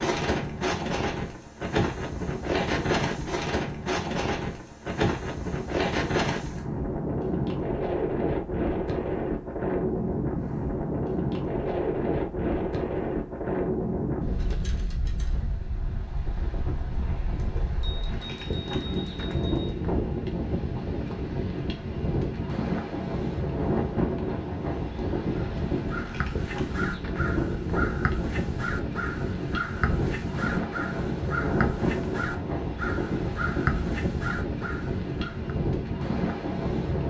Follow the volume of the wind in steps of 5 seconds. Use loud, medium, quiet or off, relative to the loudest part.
loud, loud, loud, medium, loud, loud, loud, loud.